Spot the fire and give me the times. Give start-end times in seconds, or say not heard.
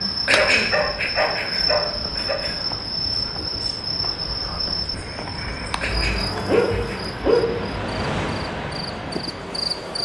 not heard.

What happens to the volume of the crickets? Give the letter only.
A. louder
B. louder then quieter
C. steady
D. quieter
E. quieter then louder
D.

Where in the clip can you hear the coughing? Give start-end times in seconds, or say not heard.
0.2-2.6, 5.8-7.2.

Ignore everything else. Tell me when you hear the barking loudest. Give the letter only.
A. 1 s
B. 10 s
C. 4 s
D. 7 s
D.